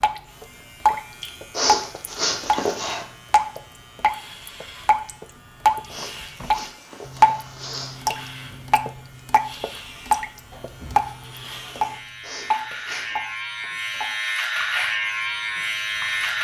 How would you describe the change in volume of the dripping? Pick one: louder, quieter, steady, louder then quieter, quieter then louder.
quieter.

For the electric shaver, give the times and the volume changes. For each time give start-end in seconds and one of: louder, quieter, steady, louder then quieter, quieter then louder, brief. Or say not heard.
0.0-16.3 louder.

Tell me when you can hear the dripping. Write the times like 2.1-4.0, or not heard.
0.0-16.3.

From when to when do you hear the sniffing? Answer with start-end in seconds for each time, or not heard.
1.5-3.0, 5.9-8.0, 12.2-13.2.